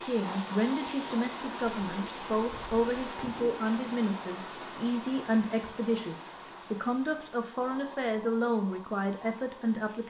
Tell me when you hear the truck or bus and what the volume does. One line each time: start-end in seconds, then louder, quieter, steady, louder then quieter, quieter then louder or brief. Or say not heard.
not heard.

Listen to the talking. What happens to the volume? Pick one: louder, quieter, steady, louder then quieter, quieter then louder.
steady.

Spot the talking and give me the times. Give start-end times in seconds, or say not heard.
0.0-10.0.